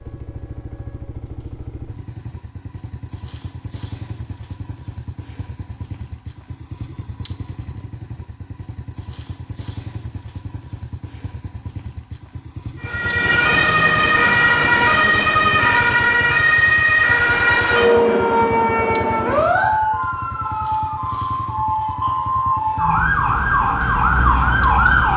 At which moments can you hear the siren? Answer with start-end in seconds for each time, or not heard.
12.8-25.1.